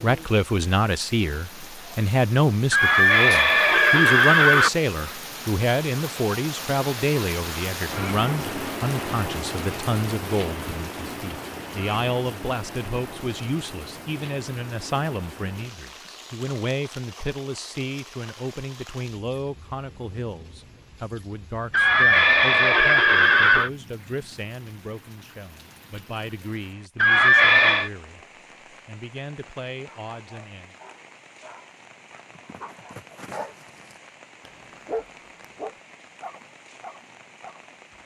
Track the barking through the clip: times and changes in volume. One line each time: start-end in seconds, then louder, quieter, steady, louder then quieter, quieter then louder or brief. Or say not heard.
30.1-38.0 louder then quieter.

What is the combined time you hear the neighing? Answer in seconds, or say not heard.
5 s.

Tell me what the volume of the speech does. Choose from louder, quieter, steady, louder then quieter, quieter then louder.
quieter.